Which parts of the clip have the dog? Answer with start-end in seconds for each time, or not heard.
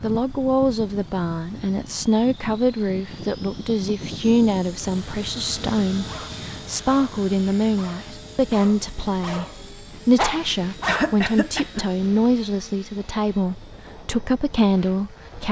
6.0-11.2.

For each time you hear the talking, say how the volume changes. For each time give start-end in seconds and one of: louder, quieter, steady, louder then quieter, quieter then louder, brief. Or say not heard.
0.0-15.4 steady.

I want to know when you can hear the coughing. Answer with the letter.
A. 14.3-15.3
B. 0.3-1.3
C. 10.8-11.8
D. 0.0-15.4
C.